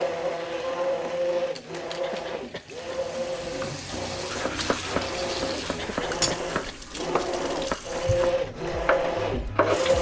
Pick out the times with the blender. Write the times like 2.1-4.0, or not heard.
0.0-9.9.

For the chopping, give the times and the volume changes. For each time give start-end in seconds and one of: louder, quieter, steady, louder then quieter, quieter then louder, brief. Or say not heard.
4.3-9.9 steady.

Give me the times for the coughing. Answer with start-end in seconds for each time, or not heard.
2.0-3.0, 5.8-6.8.